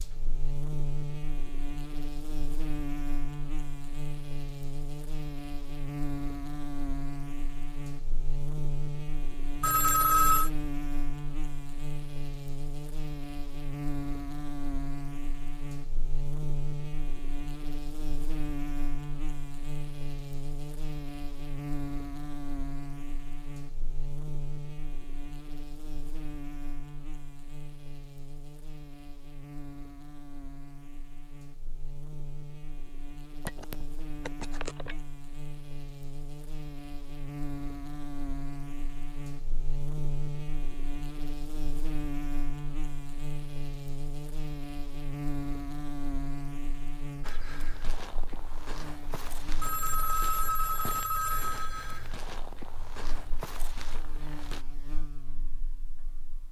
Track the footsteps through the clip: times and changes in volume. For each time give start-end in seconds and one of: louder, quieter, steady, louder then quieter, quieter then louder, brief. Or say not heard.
47.2-54.6 steady.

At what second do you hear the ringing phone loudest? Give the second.
10 s.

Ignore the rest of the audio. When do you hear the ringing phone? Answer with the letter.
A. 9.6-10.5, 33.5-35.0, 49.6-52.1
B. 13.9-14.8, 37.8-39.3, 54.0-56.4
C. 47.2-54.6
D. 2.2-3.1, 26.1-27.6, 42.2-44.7
A.